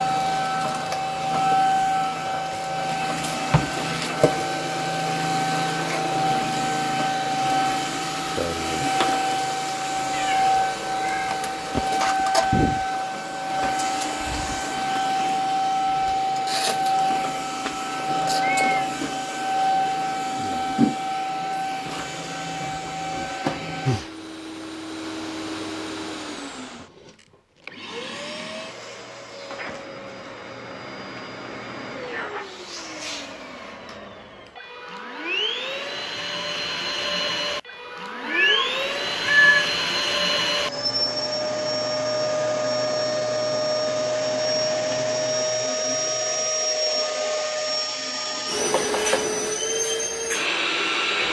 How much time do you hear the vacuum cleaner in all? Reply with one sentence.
The vacuum cleaner can be heard for 51 seconds in total.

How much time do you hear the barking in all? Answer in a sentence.
The barking can't be heard in this clip.